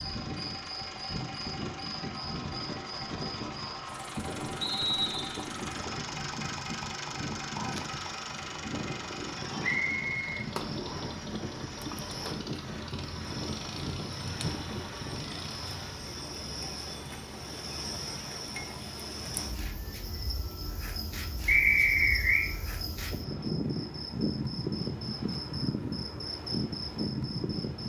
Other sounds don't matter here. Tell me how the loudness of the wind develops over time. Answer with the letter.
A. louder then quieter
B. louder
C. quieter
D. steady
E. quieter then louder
D.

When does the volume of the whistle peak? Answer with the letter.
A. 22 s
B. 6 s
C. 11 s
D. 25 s
A.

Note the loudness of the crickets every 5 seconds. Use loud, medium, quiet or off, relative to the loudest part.
medium, medium, medium, medium, loud, loud.